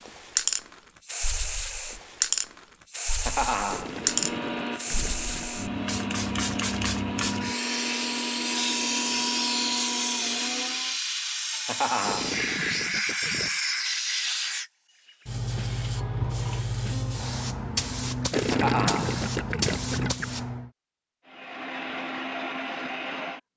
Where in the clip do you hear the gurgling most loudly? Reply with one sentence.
The loudest moment of the gurgling is at 19 seconds.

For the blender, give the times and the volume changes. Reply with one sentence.
You can hear the blender from 3.8 to 10.9 s, at a steady volume; and briefly from 21.2 to 23.4 s.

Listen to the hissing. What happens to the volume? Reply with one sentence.
The volume of the hissing stays about the same.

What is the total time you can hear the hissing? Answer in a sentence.
You can hear the hissing for 21 seconds altogether.